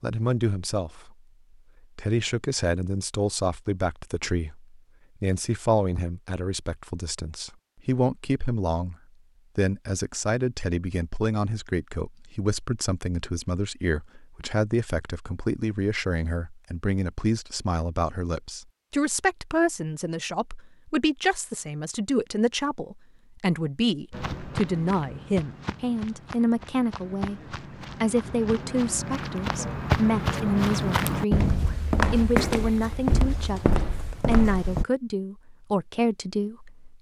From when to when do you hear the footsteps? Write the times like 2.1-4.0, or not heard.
24.1-34.9.